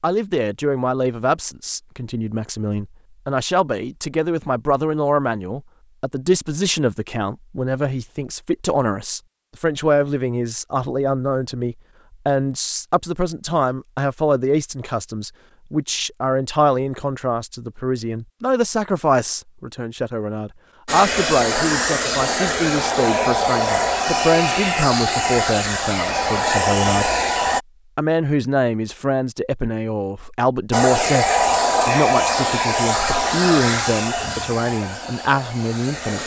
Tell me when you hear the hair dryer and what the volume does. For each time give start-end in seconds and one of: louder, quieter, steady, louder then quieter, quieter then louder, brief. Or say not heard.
20.9-27.6 steady
30.7-36.2 quieter.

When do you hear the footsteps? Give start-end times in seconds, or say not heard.
not heard.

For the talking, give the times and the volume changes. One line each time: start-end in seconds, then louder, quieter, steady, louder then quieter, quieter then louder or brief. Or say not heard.
0.0-27.1 steady
27.9-36.2 steady.